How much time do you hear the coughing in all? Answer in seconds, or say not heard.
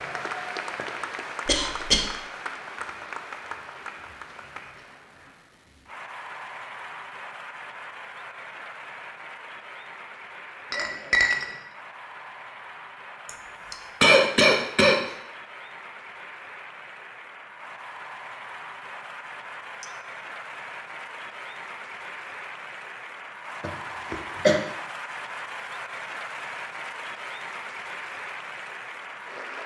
3 s.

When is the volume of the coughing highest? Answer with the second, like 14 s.
14 s.